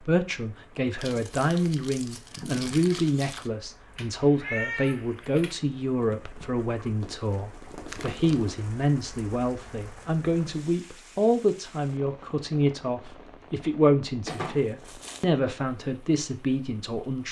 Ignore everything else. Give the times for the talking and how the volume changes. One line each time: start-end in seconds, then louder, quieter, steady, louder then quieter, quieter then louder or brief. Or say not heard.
0.1-17.2 steady.